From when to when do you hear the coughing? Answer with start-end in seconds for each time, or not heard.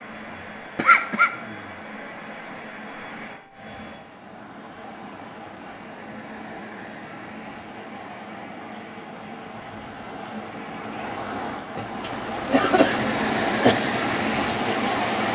0.8-1.3, 11.8-13.8.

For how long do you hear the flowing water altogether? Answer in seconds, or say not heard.
15 s.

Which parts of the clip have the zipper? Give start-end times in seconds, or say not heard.
not heard.